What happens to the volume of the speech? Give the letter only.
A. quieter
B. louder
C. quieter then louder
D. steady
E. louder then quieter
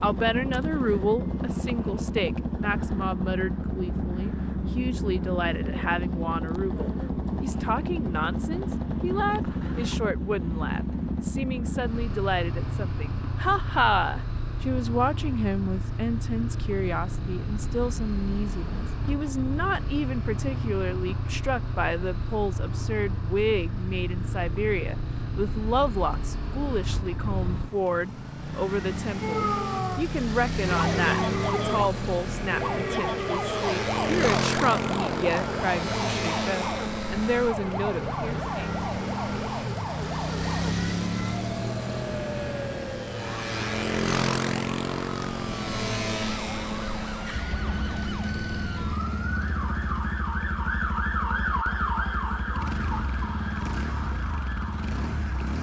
D.